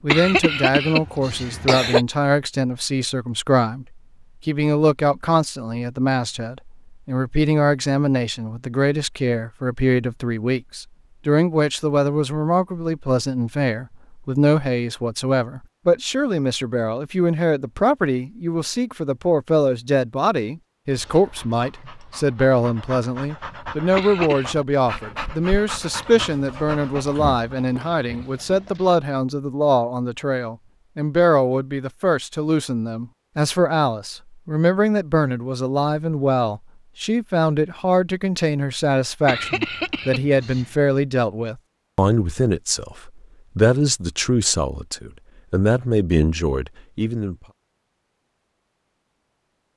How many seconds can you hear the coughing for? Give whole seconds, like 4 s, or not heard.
4 s.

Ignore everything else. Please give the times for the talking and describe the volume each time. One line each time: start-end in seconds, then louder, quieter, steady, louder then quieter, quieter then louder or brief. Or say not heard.
0.0-47.4 steady.